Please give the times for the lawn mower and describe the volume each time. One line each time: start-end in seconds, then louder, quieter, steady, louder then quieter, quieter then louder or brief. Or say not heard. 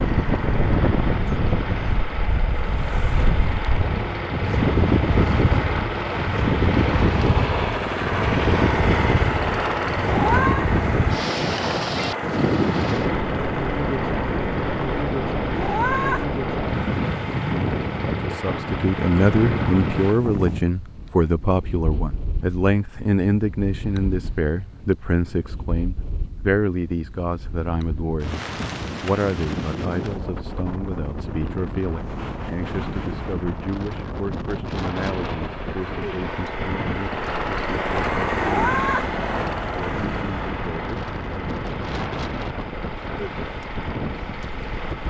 0.0-20.2 louder then quieter
34.9-45.0 louder then quieter.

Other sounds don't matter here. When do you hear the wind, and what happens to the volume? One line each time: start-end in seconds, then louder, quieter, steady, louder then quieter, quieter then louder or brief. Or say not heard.
0.0-45.0 quieter.